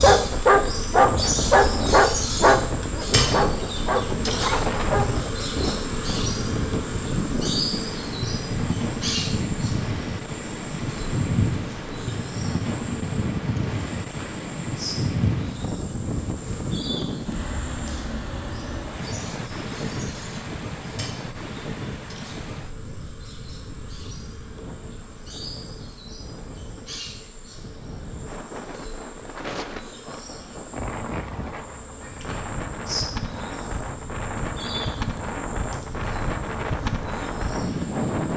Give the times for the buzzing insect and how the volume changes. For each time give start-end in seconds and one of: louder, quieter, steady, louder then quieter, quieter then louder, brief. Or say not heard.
0.0-38.3 quieter.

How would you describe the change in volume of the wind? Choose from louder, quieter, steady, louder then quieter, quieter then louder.
quieter then louder.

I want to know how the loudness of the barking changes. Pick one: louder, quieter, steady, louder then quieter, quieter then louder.
quieter.